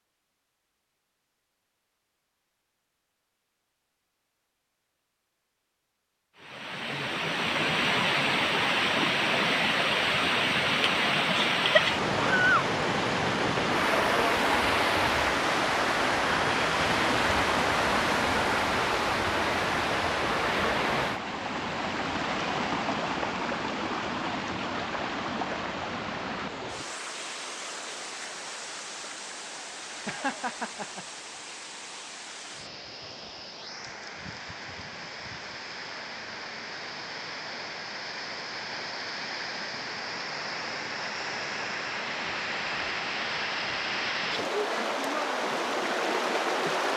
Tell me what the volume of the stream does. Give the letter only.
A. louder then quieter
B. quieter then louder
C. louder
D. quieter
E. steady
B.